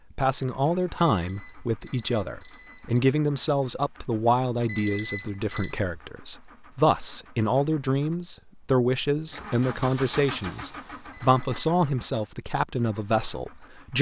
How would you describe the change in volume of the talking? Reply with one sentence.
The loudness of the talking stays about the same.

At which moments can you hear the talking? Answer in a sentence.
The talking can be heard from 0.1 to 13.9 s.